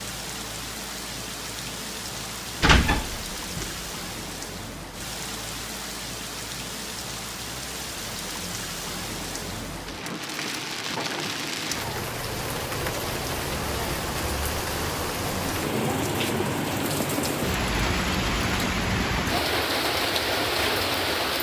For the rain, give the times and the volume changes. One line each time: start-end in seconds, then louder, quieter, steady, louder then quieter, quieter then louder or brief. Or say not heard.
0.0-21.3 louder.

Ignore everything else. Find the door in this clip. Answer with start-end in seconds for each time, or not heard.
2.6-3.8.